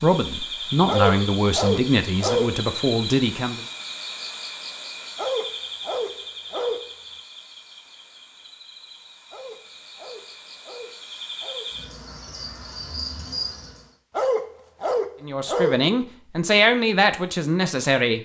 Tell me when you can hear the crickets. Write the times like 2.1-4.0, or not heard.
0.0-13.9.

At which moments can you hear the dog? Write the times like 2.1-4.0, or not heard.
0.8-2.5, 5.2-6.9, 9.3-11.7, 14.2-15.8.